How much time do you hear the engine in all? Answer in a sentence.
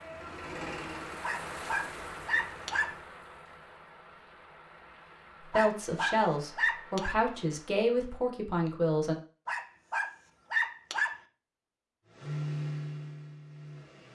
You can hear the engine for 5 seconds altogether.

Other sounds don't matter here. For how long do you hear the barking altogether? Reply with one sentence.
The barking can be heard for 5 seconds in total.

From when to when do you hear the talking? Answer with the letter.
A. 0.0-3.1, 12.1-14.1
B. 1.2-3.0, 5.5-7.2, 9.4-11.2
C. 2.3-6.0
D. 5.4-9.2
D.